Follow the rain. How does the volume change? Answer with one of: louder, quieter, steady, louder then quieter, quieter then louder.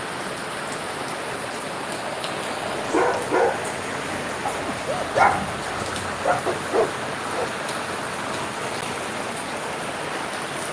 steady.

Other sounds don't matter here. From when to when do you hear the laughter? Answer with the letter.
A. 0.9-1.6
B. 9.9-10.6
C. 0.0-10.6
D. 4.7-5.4
D.